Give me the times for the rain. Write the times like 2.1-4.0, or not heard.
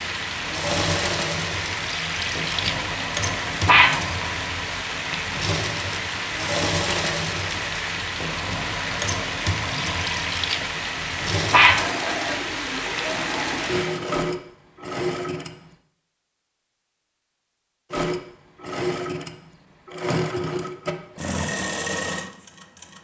0.0-14.0.